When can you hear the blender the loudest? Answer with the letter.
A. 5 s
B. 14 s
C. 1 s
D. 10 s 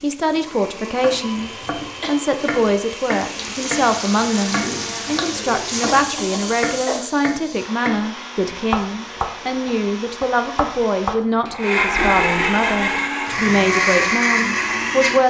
B.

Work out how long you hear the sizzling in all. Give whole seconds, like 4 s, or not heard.
7 s.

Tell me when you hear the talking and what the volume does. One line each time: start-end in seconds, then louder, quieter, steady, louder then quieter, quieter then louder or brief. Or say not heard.
0.0-15.2 steady.